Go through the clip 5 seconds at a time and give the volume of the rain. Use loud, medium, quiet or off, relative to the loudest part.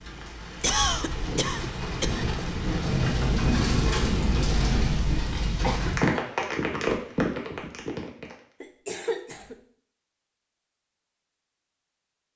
loud, loud, off.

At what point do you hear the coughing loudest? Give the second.
1 s.